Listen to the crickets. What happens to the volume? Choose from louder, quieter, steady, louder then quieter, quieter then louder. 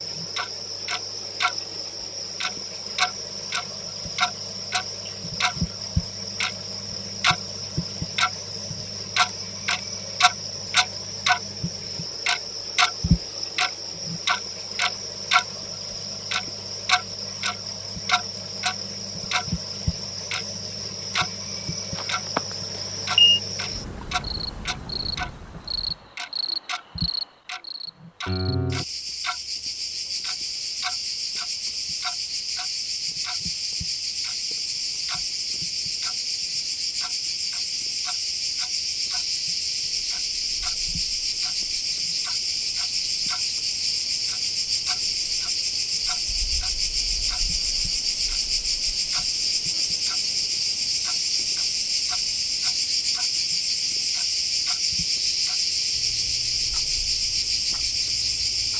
louder.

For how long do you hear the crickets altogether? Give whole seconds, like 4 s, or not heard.
59 s.